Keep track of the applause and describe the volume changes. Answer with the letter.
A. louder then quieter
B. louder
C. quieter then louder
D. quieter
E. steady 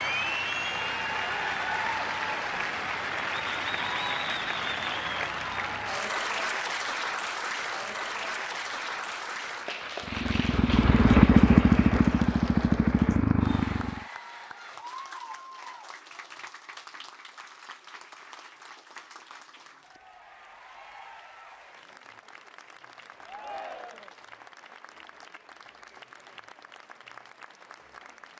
D.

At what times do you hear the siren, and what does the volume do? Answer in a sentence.
The siren can't be heard in this clip.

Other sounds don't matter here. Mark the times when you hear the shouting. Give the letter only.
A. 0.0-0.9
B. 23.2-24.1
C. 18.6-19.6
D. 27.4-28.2
B.